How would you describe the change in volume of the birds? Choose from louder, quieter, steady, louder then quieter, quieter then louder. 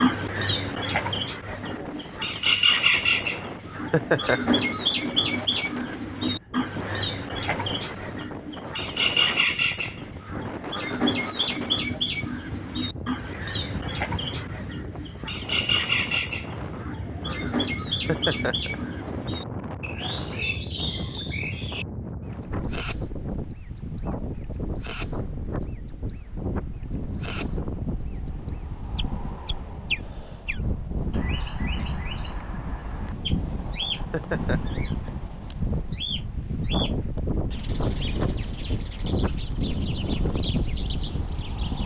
quieter.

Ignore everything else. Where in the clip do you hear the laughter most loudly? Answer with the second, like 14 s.
4 s.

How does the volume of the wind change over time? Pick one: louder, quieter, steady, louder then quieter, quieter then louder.
louder.